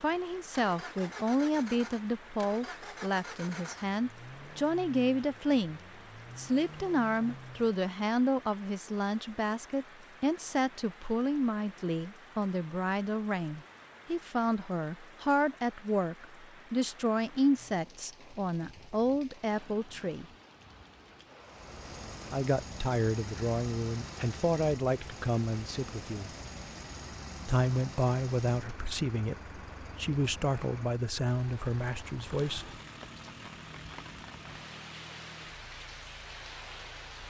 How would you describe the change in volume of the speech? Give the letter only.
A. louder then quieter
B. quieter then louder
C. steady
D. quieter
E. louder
C.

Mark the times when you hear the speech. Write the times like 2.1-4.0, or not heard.
0.0-20.2, 22.3-26.3, 27.4-32.6.